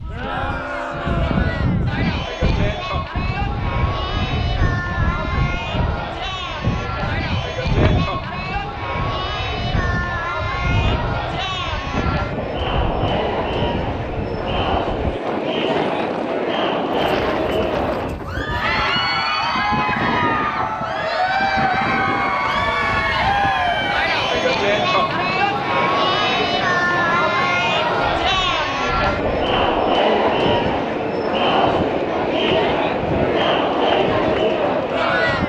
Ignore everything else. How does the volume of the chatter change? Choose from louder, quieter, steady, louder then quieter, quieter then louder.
louder.